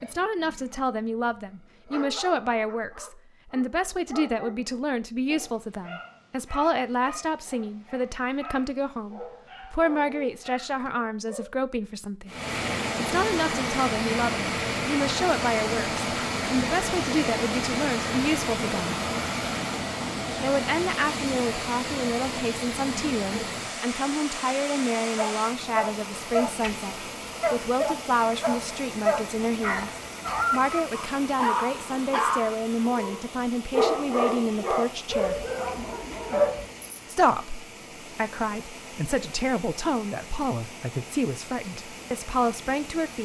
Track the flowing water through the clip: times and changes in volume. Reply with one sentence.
You can hear the flowing water from 12.2 to 43.1 s, getting quieter.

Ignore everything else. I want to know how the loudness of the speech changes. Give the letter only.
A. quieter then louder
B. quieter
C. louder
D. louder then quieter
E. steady
E.